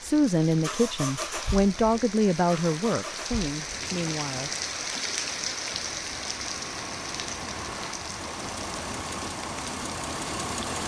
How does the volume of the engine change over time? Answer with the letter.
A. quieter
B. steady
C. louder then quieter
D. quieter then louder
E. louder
D.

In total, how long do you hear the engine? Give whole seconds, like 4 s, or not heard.
11 s.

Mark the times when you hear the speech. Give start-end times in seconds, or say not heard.
0.0-4.5.